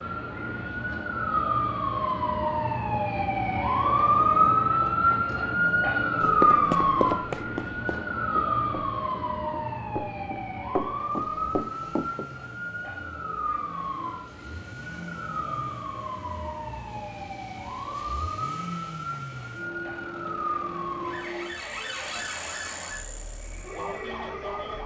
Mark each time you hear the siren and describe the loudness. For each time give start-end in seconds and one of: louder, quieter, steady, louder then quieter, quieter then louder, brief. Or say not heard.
0.0-24.8 quieter.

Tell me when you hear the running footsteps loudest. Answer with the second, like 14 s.
7 s.